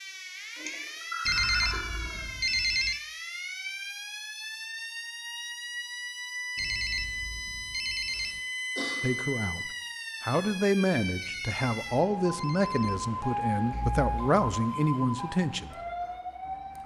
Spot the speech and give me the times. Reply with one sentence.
You can hear the speech from 9.0 to 15.8 s.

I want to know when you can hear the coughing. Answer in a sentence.
The coughing can be heard from 0.6 to 2.2 s, from 8.1 to 9.2 s and from 13.7 to 14.3 s.